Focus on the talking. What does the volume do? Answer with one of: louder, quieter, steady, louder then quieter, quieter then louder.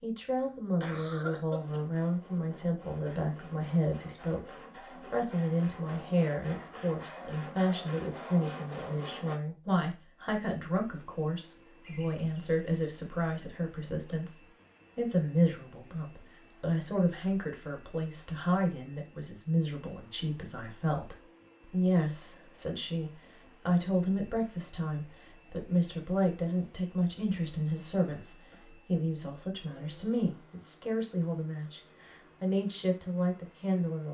steady.